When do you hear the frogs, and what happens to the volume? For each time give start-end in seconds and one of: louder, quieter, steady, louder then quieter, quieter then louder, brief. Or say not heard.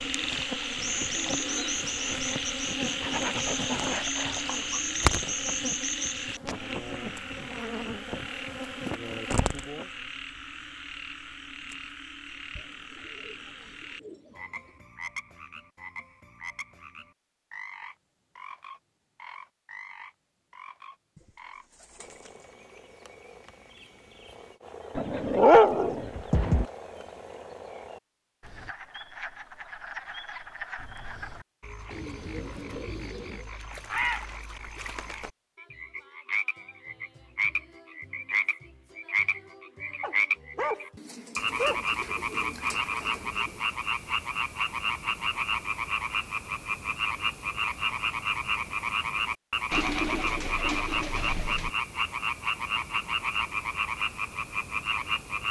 0.0-55.4 quieter then louder.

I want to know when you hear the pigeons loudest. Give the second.
50 s.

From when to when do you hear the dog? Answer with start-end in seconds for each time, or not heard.
3.0-5.0, 24.9-26.6, 40.0-41.9.